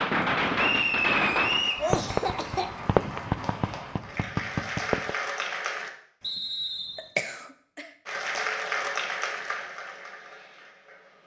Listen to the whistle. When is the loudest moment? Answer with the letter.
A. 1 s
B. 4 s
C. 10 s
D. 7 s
A.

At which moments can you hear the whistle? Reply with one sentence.
The whistle can be heard from 0.6 to 1.9 s and from 6.2 to 7.1 s.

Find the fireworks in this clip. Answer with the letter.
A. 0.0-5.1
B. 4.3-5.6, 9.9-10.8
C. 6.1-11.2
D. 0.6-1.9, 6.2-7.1
A.